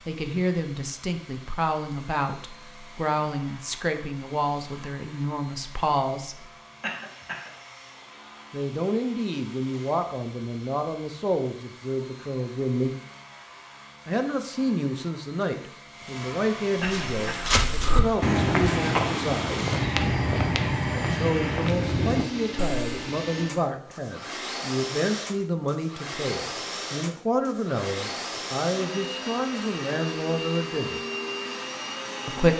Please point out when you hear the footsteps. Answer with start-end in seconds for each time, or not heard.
16.8-22.9.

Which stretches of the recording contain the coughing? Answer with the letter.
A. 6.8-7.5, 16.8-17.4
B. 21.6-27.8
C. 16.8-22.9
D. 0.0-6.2
A.